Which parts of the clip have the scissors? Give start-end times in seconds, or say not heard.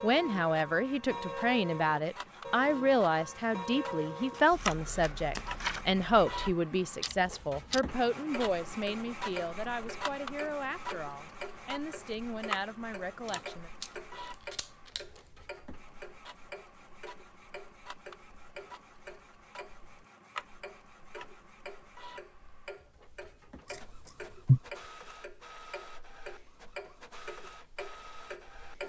4.3-5.8, 13.2-15.2, 23.6-24.6.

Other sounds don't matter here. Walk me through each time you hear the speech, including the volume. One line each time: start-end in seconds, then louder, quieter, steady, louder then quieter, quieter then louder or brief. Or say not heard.
0.0-13.7 quieter.